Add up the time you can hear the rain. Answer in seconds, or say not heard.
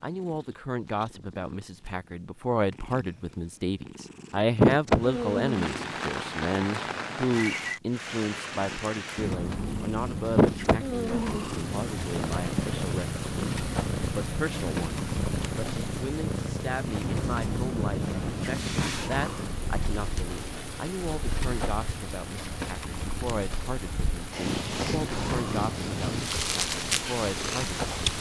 23 s.